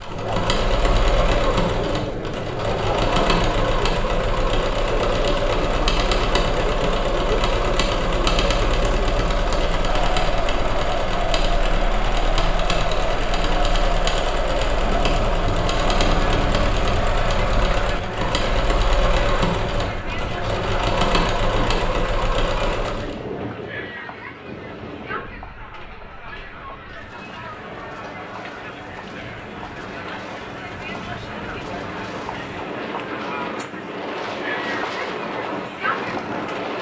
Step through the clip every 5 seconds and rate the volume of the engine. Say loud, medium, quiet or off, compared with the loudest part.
loud, loud, loud, loud, loud, off, off, off.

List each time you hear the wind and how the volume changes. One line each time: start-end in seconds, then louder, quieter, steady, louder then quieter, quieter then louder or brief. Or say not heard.
14.8-36.7 quieter then louder.